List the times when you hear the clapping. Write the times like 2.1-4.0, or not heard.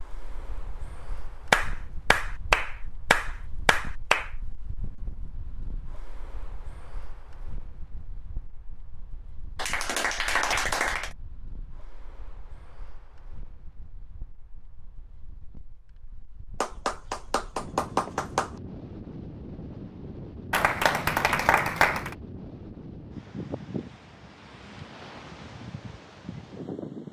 1.5-4.3, 9.6-11.2, 16.6-18.5, 20.5-22.1.